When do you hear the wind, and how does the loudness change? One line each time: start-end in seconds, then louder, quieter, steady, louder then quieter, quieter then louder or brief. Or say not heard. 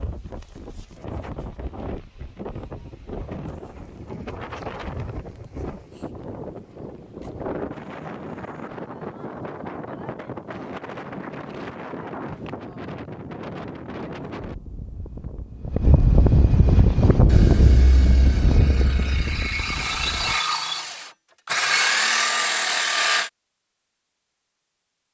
0.0-20.4 louder.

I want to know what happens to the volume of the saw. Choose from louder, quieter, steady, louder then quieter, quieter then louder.
louder.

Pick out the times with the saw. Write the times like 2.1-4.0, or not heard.
16.7-23.3.